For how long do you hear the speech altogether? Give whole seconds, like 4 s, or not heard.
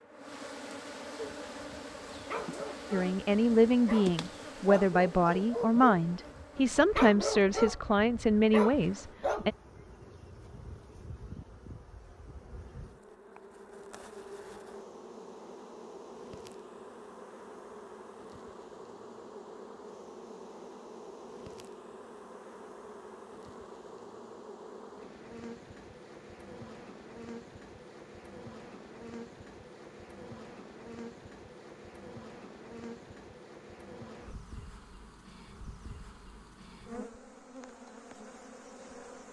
7 s.